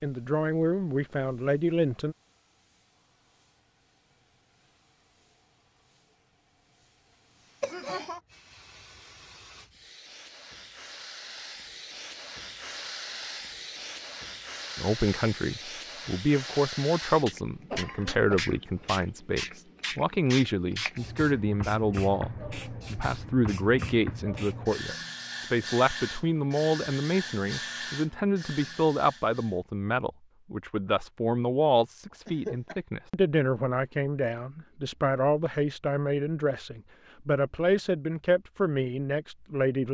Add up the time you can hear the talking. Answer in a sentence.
You can hear the talking for 27 seconds altogether.